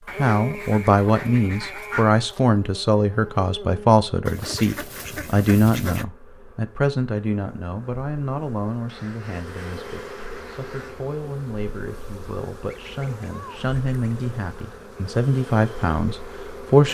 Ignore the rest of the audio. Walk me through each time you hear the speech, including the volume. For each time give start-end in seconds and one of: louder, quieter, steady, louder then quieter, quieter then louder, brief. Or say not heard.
0.1-16.8 quieter then louder.